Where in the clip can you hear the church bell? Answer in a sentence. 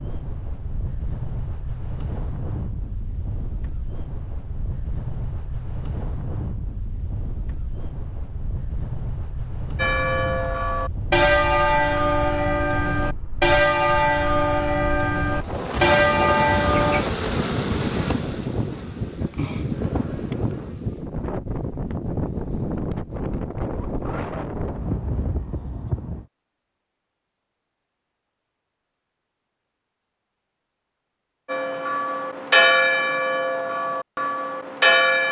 The church bell can be heard from 9.8 to 17.1 s and from 31.4 to 35.2 s.